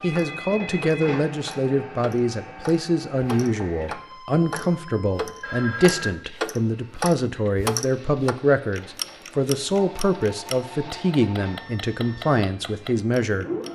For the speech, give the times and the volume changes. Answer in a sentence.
You can hear the speech from 0.0 to 13.4 s, at a steady volume.